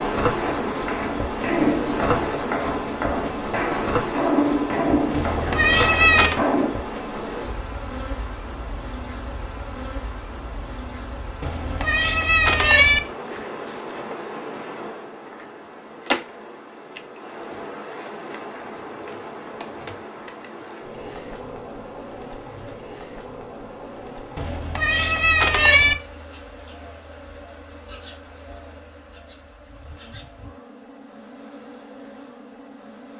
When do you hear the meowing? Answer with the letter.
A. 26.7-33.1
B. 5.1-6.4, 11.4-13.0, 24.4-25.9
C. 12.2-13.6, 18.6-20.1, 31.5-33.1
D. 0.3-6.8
B.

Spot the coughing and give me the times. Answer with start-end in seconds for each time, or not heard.
not heard.